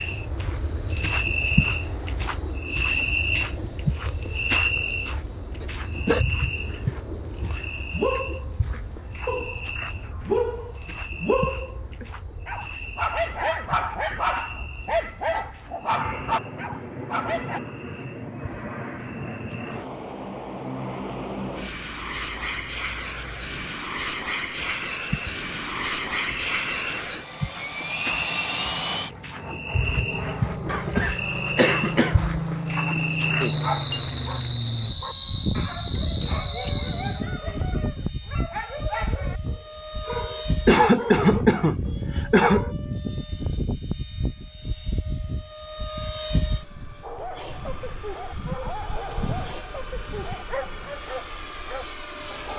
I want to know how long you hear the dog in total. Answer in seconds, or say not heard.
25 s.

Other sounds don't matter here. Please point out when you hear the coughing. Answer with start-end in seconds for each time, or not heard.
5.6-6.2, 30.6-32.2, 40.6-42.6.